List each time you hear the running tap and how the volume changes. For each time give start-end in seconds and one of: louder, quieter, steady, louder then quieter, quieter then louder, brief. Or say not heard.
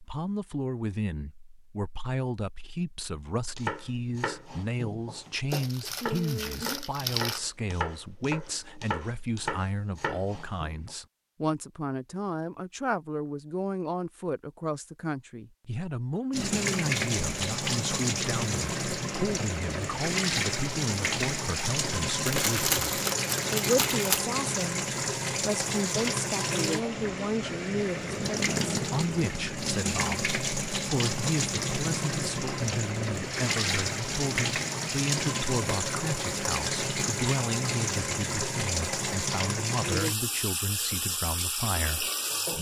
16.3-42.5 steady.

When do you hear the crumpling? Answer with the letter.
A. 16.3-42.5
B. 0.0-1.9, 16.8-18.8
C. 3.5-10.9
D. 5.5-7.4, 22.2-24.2
D.